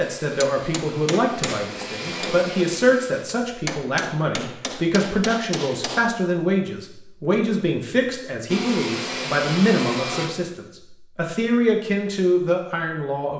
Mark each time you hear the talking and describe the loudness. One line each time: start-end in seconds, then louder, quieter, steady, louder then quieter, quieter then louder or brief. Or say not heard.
0.0-13.3 steady.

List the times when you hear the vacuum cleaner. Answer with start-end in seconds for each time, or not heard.
0.0-3.2, 8.4-10.3.